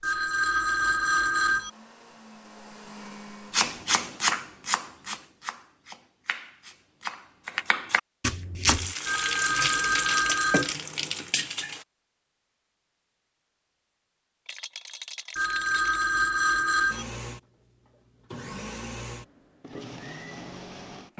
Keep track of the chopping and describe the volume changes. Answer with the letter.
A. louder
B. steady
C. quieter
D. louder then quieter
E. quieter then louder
E.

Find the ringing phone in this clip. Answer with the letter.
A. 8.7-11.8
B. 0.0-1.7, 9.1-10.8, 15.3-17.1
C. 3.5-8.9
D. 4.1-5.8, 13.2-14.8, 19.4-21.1
B.